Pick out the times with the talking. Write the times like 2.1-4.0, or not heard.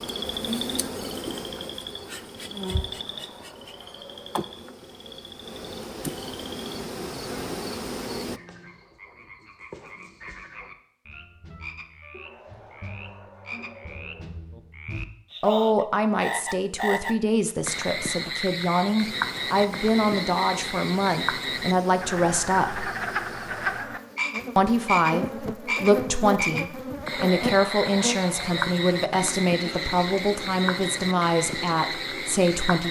15.4-22.9, 24.6-32.8.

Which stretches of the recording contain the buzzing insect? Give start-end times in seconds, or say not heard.
0.0-8.4, 18.9-32.8.